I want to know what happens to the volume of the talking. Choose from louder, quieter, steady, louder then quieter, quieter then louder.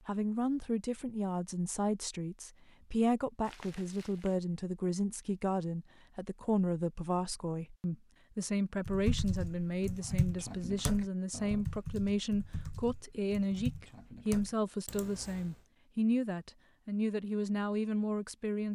steady.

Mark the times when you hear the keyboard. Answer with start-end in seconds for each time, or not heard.
8.8-15.7.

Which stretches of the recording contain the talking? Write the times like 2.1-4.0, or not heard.
0.1-18.7.